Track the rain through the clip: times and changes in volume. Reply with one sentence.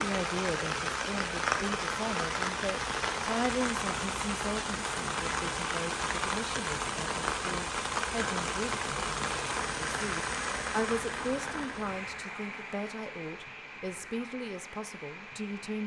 The rain can be heard from 0.0 to 15.8 s, getting quieter.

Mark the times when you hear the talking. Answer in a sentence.
You can hear the talking from 0.0 to 15.8 s.